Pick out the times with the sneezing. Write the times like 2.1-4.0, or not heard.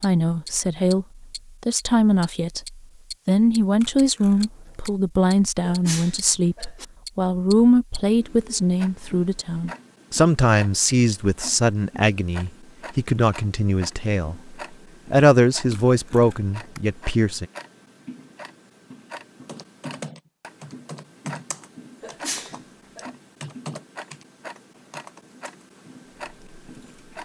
5.6-6.8, 22.0-23.1.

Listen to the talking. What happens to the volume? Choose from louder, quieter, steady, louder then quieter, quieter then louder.
steady.